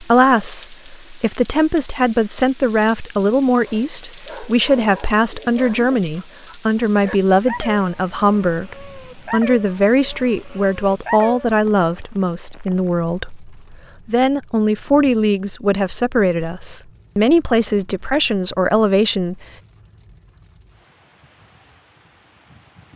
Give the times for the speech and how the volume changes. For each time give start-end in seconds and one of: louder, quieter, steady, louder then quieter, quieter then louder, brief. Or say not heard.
0.0-19.4 steady.